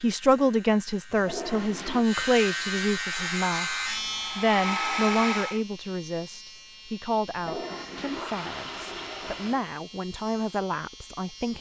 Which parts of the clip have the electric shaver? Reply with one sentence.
The electric shaver can be heard from 0.0 to 11.5 s.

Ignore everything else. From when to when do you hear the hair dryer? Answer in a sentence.
The hair dryer can be heard from 3.0 to 5.6 s.